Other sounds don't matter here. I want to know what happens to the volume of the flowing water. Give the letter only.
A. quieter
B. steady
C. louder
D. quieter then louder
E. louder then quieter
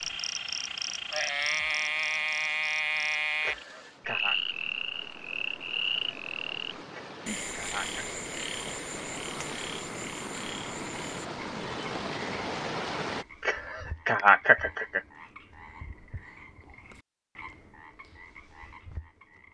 C.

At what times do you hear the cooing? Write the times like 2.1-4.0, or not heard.
not heard.